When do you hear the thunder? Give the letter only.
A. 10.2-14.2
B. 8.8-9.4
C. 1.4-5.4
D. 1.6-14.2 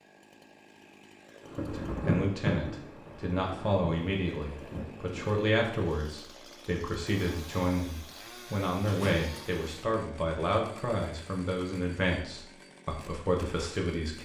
C.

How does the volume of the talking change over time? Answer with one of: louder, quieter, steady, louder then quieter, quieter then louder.
steady.